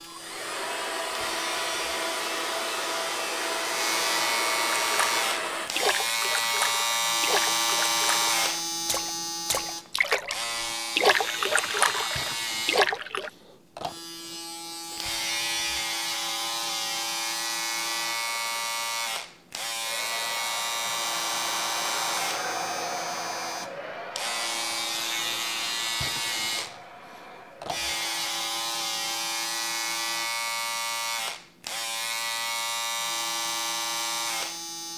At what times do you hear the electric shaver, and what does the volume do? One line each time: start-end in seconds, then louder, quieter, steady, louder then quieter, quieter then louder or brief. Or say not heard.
0.0-34.9 steady.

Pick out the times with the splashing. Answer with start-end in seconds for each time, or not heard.
4.8-13.3.